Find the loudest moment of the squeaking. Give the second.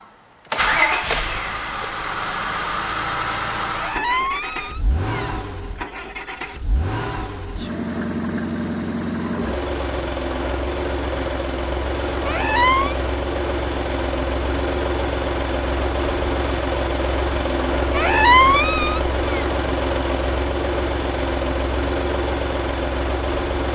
18 s.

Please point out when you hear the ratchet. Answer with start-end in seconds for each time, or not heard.
not heard.